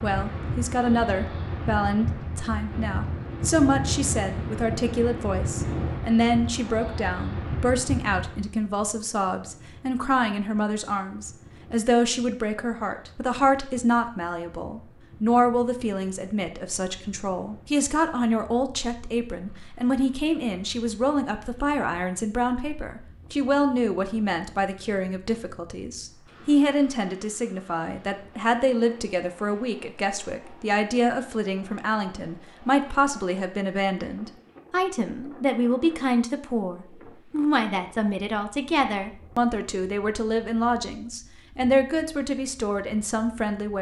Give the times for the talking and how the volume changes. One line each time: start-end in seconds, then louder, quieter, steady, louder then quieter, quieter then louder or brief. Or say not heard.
0.0-43.7 steady.